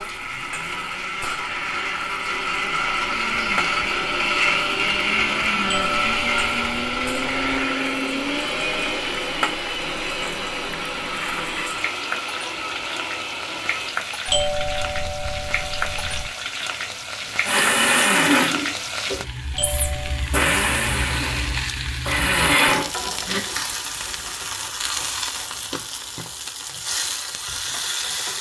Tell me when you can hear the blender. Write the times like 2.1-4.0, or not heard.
0.0-13.9, 17.4-23.4.